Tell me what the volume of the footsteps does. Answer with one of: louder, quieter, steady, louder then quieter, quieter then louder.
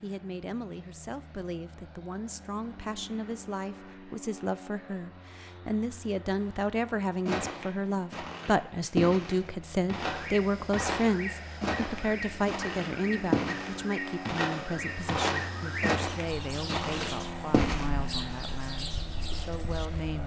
steady.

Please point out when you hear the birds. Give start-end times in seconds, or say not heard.
10.1-20.1.